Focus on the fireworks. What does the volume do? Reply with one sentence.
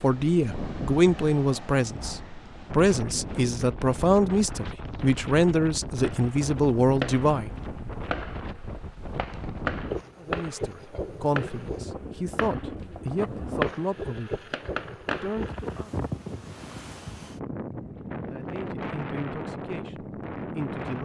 The loudness of the fireworks goes down, then up.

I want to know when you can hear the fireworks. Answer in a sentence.
You can hear the fireworks from 6.0 to 15.8 s.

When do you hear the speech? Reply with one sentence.
The speech can be heard from 0.0 to 7.5 s, from 10.2 to 15.9 s and from 18.3 to 21.0 s.